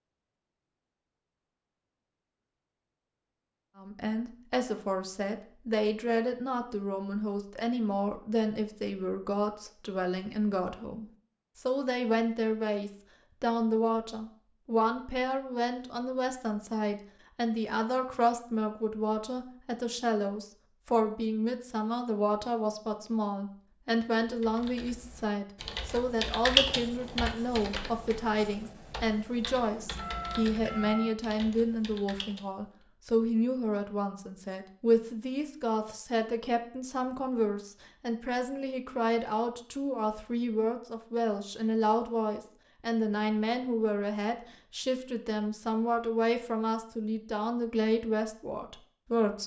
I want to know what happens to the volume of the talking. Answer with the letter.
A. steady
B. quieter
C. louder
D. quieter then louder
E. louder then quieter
A.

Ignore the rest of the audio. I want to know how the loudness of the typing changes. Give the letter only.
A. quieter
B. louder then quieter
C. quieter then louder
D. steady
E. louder
B.